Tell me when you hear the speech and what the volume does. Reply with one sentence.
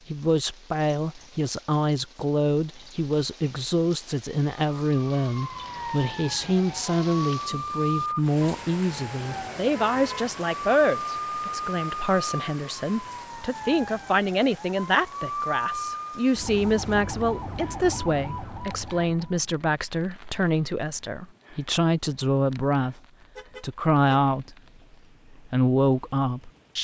The speech can be heard from 0.1 to 23.0 s, at a steady volume; briefly from 23.6 to 24.6 s; and briefly from 25.3 to 26.7 s.